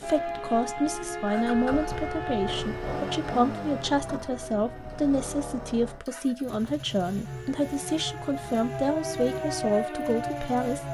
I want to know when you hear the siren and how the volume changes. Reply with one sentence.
The siren can be heard from 0.0 to 10.9 s, getting quieter then louder.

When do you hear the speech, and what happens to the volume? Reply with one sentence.
The speech can be heard from 0.0 to 10.9 s, at a steady volume.